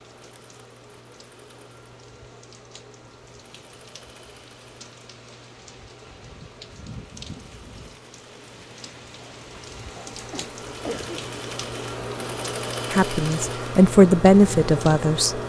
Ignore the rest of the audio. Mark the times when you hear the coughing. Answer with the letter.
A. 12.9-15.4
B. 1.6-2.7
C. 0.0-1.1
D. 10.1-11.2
D.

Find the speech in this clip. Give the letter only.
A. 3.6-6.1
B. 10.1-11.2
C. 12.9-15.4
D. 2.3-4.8
C.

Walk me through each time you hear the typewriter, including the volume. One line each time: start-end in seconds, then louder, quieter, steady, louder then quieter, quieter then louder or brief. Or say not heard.
not heard.